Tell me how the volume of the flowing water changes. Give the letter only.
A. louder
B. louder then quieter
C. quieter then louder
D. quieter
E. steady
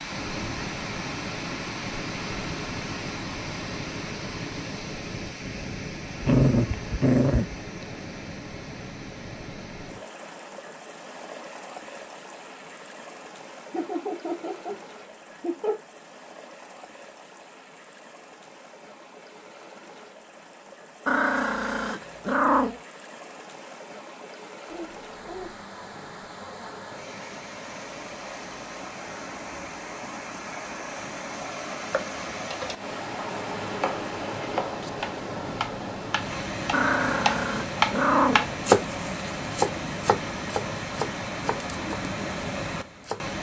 C.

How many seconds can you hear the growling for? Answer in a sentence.
The growling can be heard for 5 seconds in total.